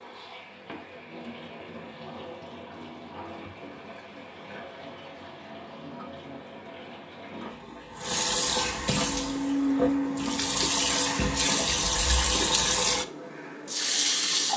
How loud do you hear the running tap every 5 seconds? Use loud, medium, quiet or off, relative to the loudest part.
quiet, medium, loud.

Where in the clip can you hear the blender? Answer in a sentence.
You can hear the blender from 9.1 to 11.7 s.